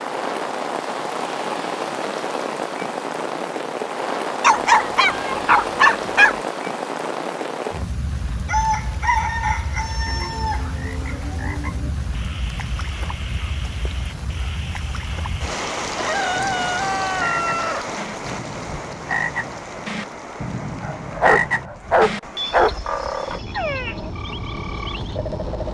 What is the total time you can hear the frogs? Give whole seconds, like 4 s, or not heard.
16 s.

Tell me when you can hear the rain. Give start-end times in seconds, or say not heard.
0.0-25.7.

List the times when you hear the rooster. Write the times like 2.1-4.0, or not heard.
8.4-11.1, 15.9-17.9.